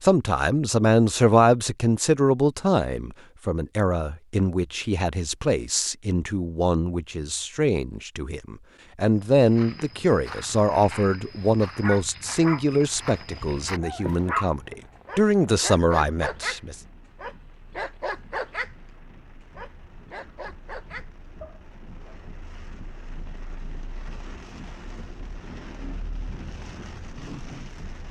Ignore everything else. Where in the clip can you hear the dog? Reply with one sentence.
The dog can be heard from 11.8 to 18.7 s and from 19.6 to 22.1 s.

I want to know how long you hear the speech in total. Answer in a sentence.
The speech can be heard for 17 seconds in total.